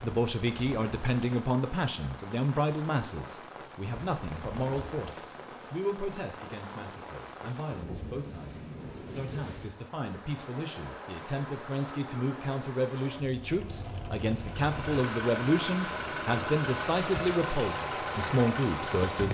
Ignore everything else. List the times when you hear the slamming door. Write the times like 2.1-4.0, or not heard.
not heard.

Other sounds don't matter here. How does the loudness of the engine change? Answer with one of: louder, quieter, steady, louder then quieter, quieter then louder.
steady.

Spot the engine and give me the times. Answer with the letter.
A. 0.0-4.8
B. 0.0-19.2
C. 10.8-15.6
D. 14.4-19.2
D.